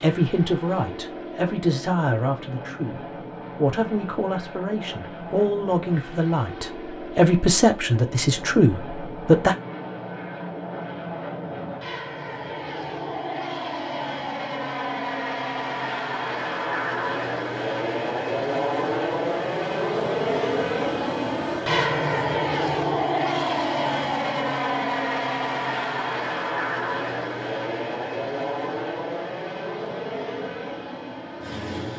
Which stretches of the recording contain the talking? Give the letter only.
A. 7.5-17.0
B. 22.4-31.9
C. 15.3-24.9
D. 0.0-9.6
D.